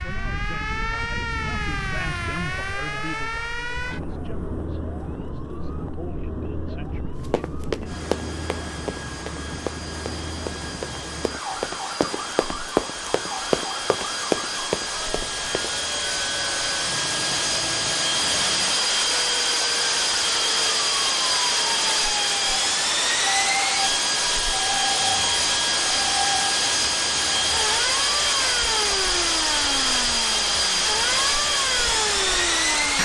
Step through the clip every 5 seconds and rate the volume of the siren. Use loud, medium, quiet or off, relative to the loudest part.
loud, medium, medium, medium, loud, loud, loud.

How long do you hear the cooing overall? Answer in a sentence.
The cooing can't be heard in this clip.